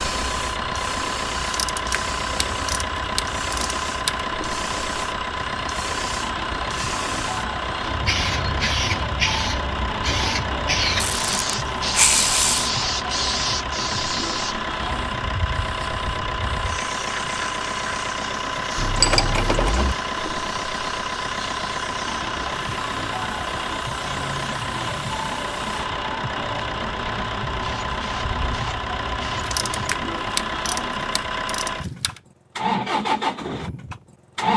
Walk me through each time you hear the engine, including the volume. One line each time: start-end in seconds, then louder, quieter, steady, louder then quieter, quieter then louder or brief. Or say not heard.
0.0-34.5 steady.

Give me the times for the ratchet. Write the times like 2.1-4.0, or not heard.
1.4-4.2, 10.9-12.7, 18.8-19.9, 29.4-32.2.